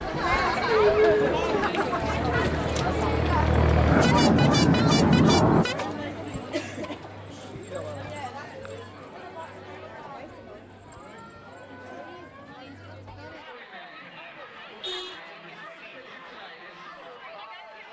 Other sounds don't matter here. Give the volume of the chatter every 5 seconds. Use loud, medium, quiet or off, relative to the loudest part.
loud, medium, quiet, quiet.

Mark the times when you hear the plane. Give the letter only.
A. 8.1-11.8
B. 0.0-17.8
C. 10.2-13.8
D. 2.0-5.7
D.